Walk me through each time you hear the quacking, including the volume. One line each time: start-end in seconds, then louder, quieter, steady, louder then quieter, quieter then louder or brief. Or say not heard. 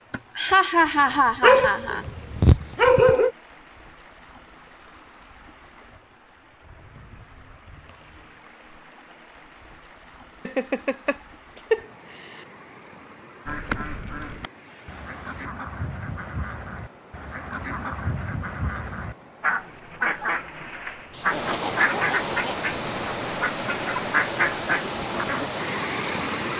13.4-25.5 louder.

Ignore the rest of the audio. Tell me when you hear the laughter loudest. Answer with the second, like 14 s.
1 s.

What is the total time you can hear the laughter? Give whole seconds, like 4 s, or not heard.
5 s.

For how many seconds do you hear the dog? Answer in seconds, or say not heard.
2 s.